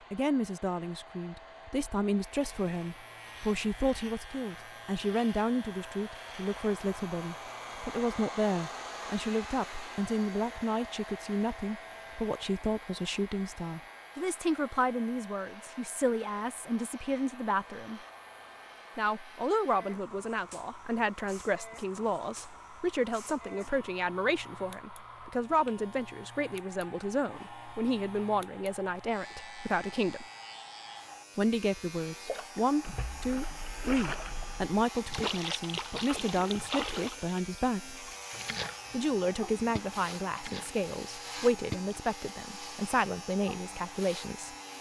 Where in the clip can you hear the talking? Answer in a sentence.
You can hear the talking from 0.1 to 18.0 s, from 18.9 to 30.2 s, from 31.4 to 38.0 s and from 38.9 to 44.5 s.